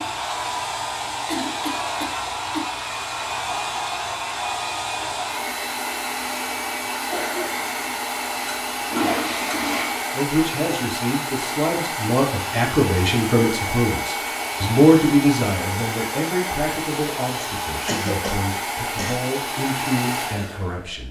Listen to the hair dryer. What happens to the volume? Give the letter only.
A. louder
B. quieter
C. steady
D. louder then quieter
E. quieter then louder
C.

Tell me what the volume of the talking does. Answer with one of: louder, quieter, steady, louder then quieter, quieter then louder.
louder then quieter.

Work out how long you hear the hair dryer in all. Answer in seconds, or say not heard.
21 s.